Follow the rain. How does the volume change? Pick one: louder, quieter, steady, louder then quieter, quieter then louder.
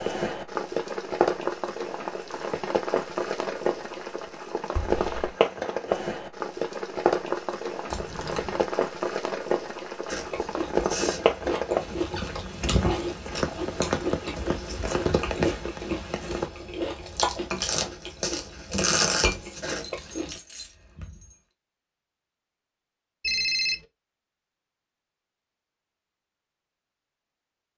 steady.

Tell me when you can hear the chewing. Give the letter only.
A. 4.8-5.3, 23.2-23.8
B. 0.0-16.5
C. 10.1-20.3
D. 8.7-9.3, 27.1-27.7
C.